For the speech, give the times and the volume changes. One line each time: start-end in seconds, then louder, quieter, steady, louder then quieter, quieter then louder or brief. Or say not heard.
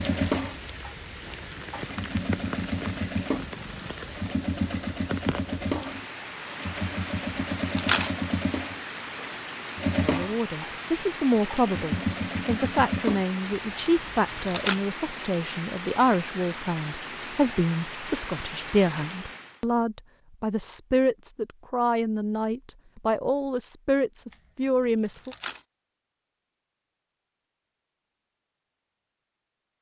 10.1-25.4 steady.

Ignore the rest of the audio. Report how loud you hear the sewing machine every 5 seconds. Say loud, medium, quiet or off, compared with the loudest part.
loud, loud, loud, off, off, off.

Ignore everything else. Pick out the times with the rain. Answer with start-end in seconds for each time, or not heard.
0.0-19.6.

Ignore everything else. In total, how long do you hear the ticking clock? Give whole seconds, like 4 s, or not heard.
not heard.